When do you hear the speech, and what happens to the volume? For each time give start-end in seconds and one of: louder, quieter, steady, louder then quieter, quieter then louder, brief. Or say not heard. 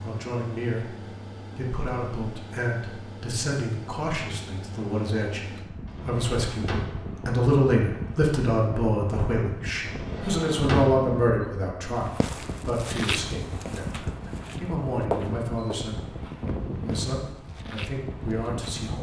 0.0-18.9 louder then quieter.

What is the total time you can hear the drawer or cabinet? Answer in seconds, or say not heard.
2 s.